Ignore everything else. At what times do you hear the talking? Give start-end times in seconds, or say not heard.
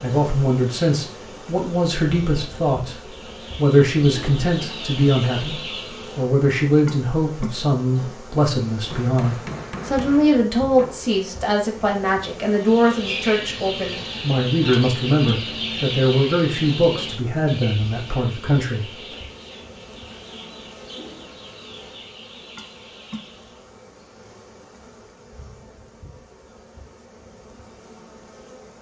0.0-18.9.